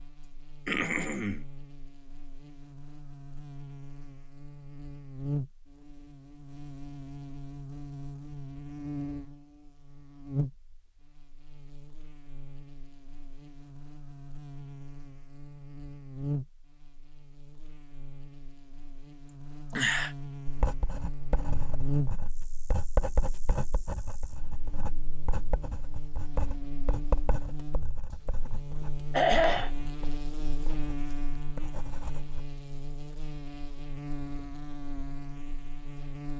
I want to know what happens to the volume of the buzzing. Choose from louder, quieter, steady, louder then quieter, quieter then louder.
steady.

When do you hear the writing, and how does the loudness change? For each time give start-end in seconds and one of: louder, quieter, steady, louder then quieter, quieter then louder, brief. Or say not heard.
20.4-32.4 quieter.